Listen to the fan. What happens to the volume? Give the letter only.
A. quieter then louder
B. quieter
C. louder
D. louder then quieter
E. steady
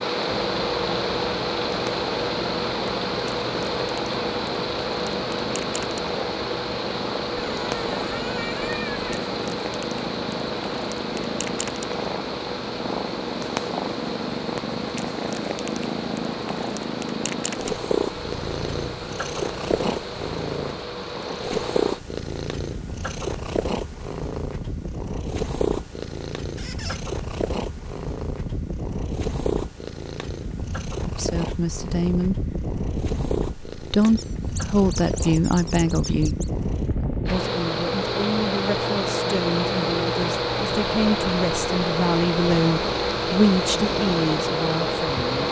A.